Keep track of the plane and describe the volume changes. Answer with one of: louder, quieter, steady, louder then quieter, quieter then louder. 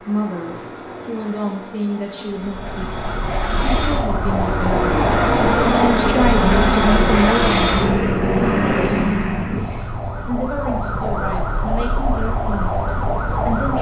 louder.